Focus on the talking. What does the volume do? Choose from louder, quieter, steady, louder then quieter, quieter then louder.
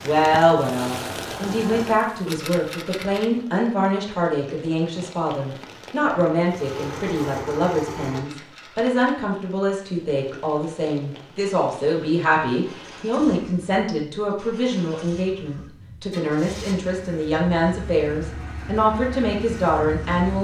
steady.